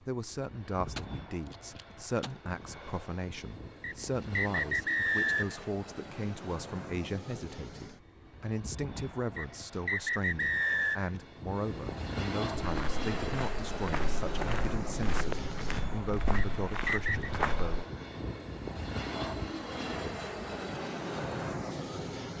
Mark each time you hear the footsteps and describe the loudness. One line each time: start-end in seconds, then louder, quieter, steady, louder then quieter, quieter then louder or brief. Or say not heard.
12.6-17.9 louder.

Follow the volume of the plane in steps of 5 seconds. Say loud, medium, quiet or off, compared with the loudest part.
medium, medium, loud, loud, loud.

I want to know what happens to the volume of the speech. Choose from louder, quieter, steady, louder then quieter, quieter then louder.
steady.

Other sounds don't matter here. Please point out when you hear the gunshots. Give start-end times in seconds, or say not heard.
0.9-2.4.